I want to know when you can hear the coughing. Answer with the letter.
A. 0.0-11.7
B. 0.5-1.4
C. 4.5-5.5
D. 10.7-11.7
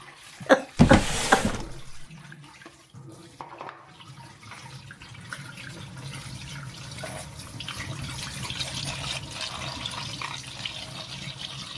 B.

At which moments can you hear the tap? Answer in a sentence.
You can hear the tap from 0.0 to 11.7 s.